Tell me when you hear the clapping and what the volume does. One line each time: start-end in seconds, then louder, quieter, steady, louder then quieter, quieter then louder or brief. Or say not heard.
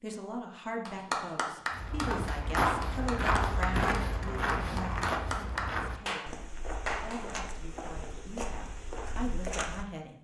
0.8-7.4 quieter then louder.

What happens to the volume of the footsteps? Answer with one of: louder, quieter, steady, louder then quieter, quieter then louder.
quieter.